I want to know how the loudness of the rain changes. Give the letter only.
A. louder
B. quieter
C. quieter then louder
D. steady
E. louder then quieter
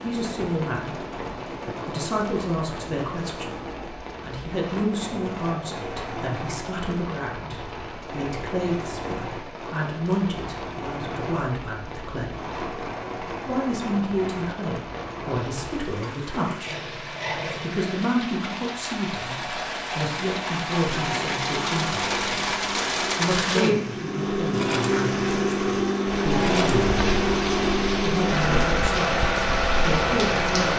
A.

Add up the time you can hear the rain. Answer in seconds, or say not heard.
31 s.